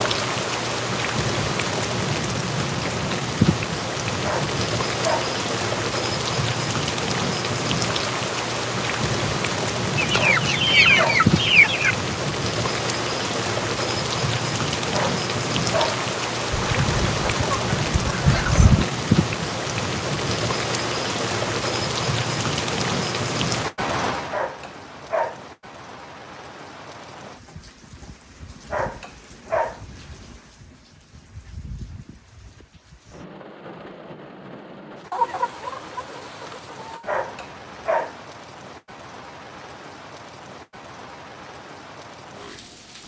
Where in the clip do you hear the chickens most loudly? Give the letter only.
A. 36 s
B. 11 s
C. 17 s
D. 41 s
B.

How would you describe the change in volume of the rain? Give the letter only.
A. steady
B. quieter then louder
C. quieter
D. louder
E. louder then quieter
C.